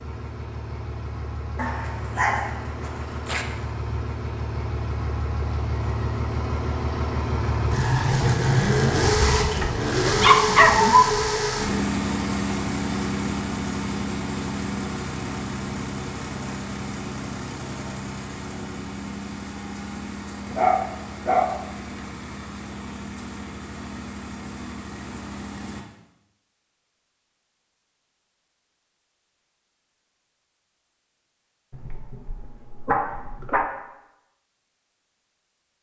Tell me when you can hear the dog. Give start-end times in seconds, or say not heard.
1.6-3.5, 9.0-11.1, 20.5-22.0, 31.7-33.6.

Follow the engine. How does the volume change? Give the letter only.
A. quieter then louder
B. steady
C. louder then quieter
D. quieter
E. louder
C.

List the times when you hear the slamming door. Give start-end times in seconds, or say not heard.
not heard.